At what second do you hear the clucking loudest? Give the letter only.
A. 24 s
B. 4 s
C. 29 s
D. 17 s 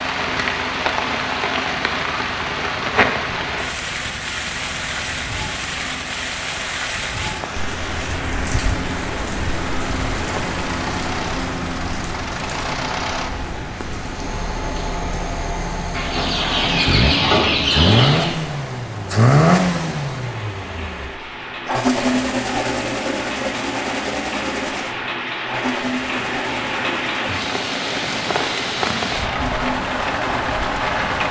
D.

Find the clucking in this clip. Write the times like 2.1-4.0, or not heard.
15.9-18.4.